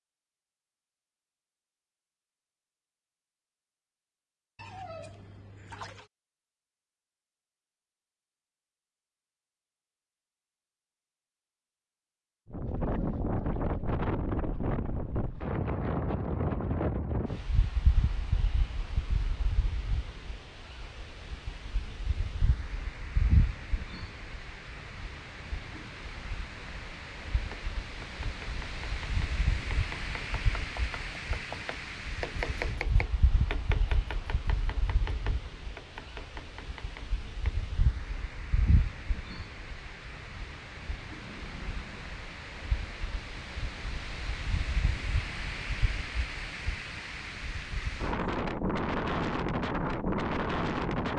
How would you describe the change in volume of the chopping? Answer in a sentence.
The volume of the chopping goes up, then down.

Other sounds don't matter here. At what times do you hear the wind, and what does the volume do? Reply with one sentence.
The wind can be heard from 12.5 to 51.1 s, getting quieter then louder.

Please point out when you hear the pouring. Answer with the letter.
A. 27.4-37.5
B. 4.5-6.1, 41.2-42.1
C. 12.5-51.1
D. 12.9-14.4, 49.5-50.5
B.